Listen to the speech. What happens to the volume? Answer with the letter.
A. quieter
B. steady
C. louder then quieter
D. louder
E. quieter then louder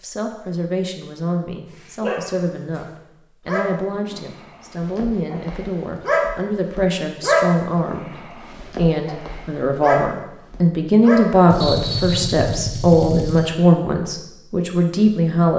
D.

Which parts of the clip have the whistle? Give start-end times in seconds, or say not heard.
11.6-12.4.